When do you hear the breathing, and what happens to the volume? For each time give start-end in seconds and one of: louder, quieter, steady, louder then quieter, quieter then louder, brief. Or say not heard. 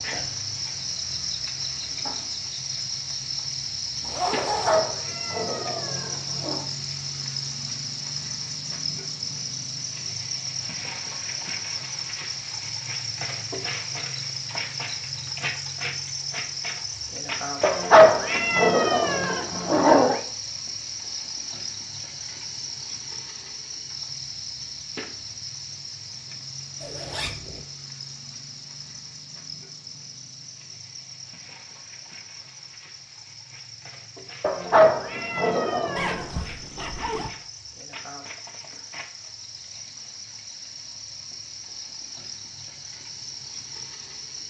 not heard.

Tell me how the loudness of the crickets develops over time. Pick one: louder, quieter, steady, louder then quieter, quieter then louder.
quieter.